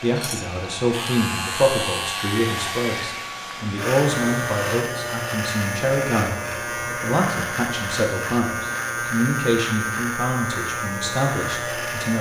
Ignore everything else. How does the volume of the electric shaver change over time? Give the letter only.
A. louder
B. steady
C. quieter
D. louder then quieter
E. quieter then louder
B.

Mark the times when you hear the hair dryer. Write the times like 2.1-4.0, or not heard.
0.0-4.6.